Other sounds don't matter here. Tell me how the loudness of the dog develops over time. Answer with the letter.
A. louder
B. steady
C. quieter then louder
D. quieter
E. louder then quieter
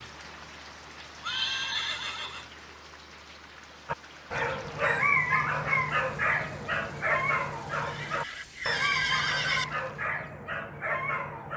D.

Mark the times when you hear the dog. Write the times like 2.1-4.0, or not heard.
3.9-11.5.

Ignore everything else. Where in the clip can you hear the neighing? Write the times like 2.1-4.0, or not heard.
1.2-2.7, 7.7-9.7.